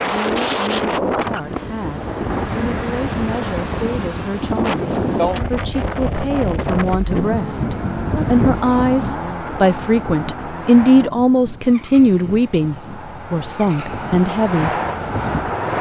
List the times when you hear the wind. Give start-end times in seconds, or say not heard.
0.0-15.7.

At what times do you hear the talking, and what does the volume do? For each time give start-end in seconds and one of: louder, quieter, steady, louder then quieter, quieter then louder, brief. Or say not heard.
0.0-14.8 louder.